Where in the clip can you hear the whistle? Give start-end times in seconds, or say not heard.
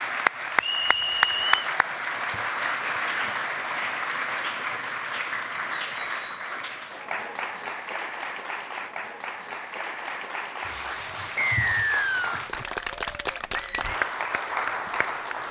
0.6-1.7, 5.8-6.5, 11.3-12.4.